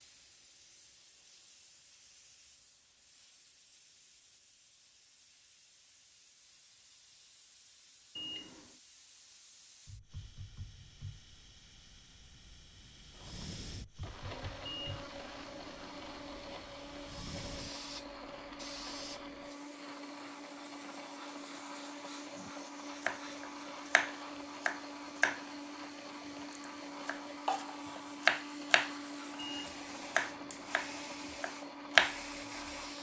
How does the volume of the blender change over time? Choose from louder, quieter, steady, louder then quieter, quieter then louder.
steady.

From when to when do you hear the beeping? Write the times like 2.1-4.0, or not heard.
8.2-8.8, 14.7-16.6, 29.4-31.4.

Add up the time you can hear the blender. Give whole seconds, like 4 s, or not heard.
20 s.